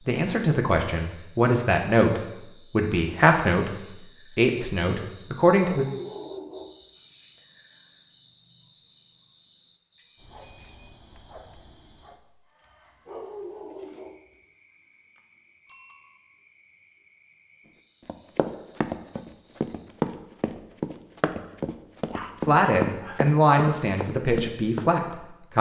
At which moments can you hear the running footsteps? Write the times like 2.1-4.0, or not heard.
18.1-24.9.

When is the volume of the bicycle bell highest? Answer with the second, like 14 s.
16 s.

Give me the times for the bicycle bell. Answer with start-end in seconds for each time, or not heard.
9.9-11.0, 15.7-16.1.